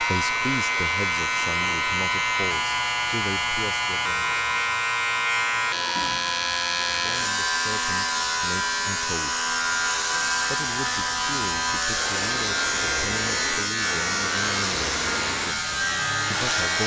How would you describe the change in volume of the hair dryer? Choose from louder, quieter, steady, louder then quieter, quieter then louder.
steady.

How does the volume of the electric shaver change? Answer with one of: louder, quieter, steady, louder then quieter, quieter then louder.
steady.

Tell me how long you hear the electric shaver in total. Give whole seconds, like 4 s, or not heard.
17 s.